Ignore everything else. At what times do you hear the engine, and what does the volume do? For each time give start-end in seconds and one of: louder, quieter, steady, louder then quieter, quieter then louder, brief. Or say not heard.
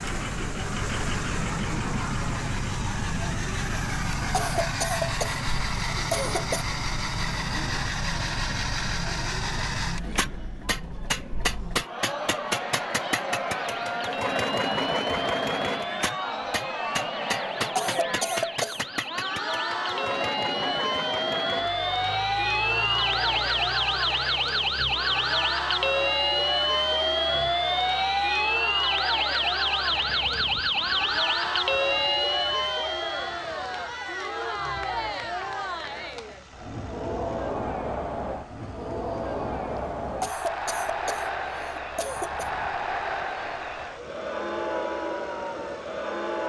0.0-46.4 quieter.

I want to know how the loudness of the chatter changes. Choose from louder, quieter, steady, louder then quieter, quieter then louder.
louder.